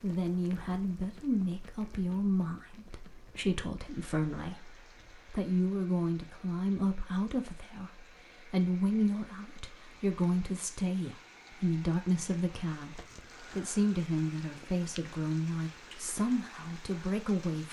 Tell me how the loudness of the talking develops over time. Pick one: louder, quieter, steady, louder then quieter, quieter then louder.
steady.